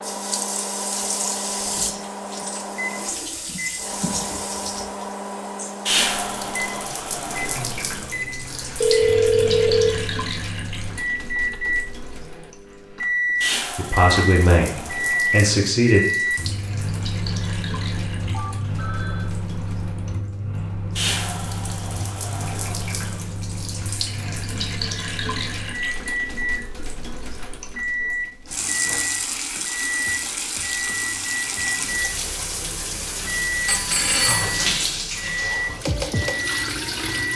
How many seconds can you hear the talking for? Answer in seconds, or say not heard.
2 s.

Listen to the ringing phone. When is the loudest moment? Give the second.
9 s.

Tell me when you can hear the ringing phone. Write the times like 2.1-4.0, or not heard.
8.8-10.1, 18.3-19.4, 33.6-34.8.